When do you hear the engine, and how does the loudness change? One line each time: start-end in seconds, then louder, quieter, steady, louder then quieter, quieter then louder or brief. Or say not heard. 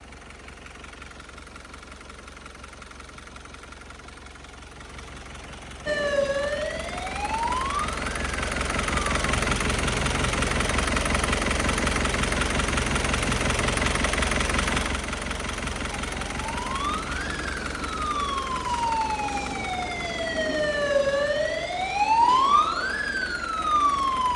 0.0-24.3 louder then quieter.